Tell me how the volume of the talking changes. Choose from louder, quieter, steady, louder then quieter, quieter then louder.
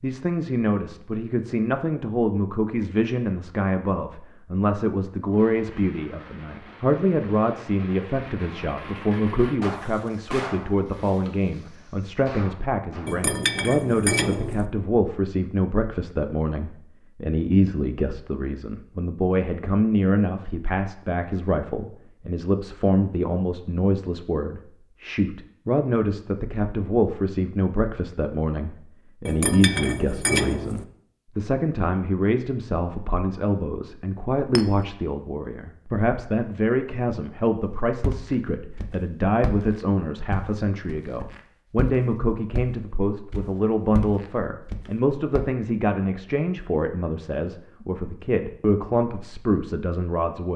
steady.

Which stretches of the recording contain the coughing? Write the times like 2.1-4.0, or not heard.
not heard.